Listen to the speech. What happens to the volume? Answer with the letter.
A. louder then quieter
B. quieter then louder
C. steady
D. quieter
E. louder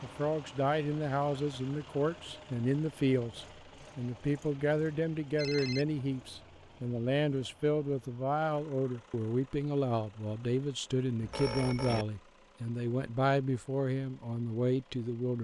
C.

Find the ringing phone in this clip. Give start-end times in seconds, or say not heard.
5.3-6.0, 11.2-12.1.